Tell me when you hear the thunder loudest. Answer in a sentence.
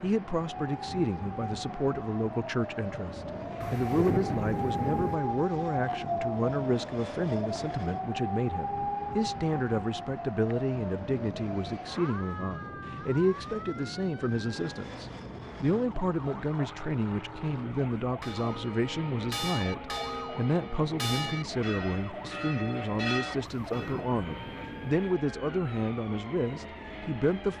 The loudest moment of the thunder is at 4 seconds.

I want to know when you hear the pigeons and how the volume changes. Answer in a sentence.
The pigeons can't be heard in this clip.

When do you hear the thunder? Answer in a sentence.
You can hear the thunder from 3.6 to 5.2 s and from 23.6 to 25.0 s.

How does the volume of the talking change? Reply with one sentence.
The volume of the talking stays about the same.